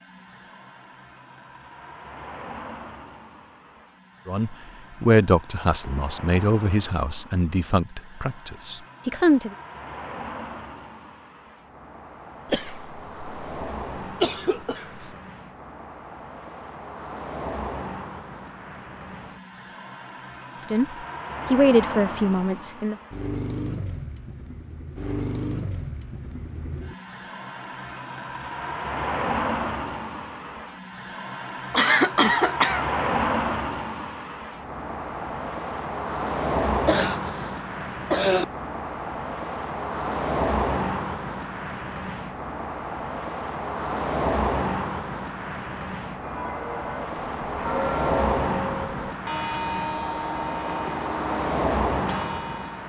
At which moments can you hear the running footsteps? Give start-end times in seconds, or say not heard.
not heard.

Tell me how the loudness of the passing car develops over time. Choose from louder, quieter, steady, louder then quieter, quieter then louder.
louder.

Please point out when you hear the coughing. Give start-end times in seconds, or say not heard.
12.5-15.2, 31.7-32.9, 36.9-38.5.